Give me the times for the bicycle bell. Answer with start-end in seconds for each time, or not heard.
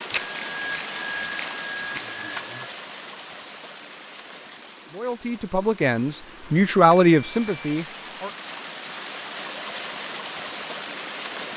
0.1-2.7, 6.9-7.8.